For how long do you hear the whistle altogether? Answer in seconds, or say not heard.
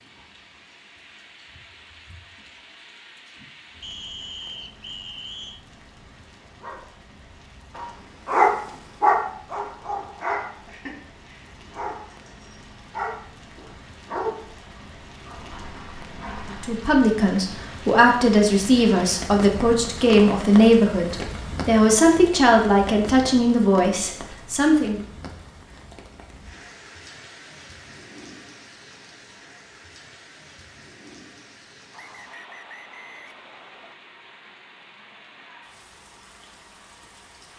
4 s.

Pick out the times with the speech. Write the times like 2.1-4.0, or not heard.
16.6-25.0.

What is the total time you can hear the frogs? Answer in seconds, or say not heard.
not heard.